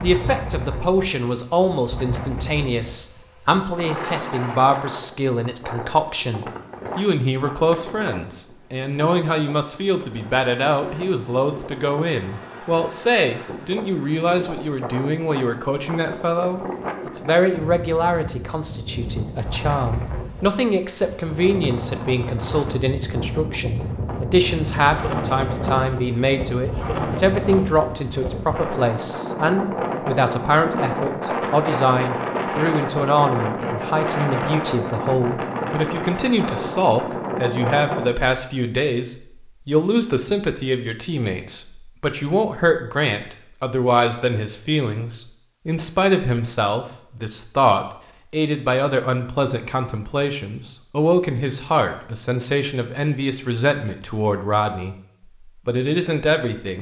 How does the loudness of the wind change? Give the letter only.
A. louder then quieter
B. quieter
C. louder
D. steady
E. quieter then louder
C.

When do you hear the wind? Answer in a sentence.
The wind can be heard from 0.0 to 38.1 s.